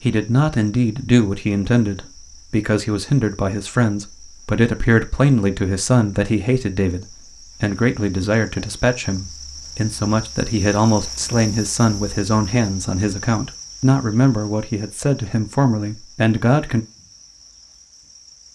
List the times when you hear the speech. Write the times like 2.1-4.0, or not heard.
0.0-16.9.